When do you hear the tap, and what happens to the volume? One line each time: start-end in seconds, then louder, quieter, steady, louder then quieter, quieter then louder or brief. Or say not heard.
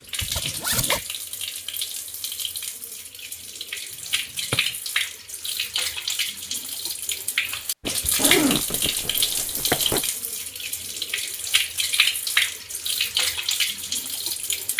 0.0-14.7 louder.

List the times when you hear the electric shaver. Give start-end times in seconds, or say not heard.
not heard.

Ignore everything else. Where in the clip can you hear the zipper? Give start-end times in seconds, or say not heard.
0.2-1.0, 8.2-10.1.